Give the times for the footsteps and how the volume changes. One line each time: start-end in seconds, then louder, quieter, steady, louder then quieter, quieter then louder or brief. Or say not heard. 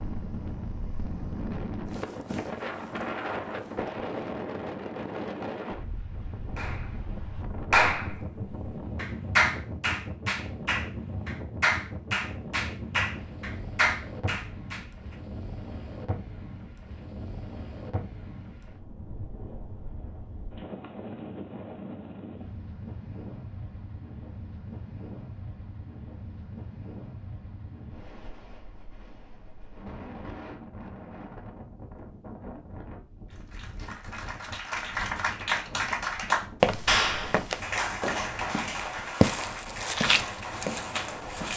36.6-41.5 louder then quieter.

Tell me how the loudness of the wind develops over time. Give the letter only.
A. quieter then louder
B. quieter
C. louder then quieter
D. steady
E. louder
B.